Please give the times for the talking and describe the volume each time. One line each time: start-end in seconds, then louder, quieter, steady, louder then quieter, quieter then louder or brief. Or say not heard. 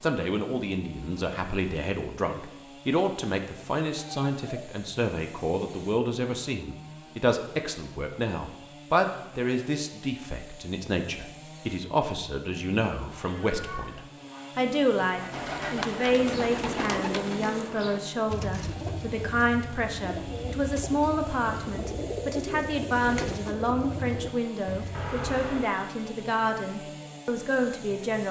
0.0-28.2 steady.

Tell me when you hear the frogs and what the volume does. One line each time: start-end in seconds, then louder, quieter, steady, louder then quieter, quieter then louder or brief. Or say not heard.
not heard.